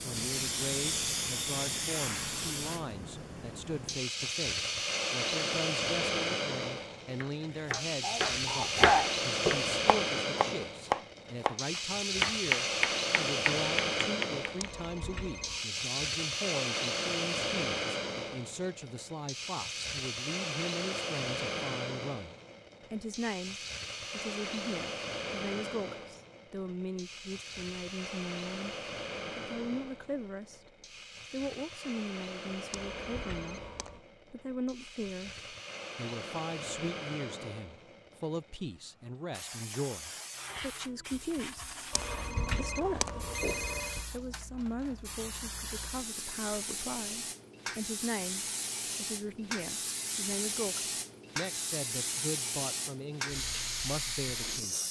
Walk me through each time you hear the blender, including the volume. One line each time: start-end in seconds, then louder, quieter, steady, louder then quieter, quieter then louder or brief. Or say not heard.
not heard.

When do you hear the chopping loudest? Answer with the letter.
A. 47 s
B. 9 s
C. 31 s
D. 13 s
B.